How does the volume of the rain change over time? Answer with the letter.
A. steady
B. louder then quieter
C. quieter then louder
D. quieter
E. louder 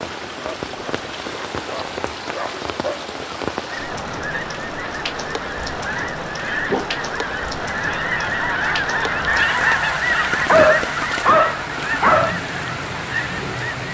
A.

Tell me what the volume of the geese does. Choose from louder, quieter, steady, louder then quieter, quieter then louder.
louder then quieter.